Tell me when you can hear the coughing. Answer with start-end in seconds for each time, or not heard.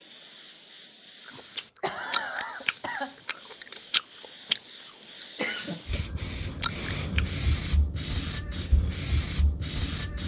1.3-3.1, 5.3-6.0.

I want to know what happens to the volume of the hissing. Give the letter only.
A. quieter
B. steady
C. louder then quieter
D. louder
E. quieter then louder
D.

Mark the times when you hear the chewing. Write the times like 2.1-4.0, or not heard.
1.2-6.0, 6.6-7.3.